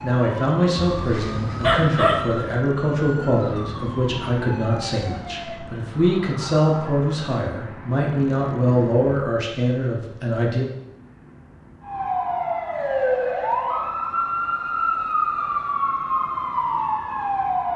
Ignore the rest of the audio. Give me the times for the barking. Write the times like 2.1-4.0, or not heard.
0.9-2.6.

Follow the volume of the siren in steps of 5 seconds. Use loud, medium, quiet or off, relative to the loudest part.
quiet, quiet, loud, loud.